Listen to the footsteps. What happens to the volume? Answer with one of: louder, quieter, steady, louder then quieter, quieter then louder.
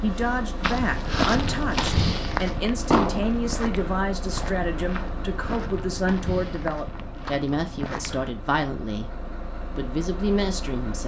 quieter.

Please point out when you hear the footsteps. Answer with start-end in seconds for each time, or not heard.
0.6-8.3.